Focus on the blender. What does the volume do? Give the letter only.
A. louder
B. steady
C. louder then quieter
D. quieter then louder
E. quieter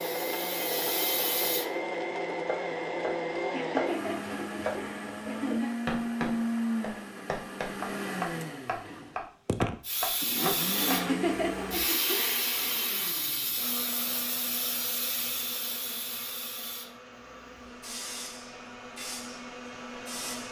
E.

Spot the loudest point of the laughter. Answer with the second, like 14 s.
11 s.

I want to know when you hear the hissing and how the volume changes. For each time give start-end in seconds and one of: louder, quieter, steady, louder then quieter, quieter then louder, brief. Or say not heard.
0.0-1.6 brief
9.8-20.4 quieter.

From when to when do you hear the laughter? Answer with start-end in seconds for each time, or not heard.
3.5-5.8, 10.8-12.4.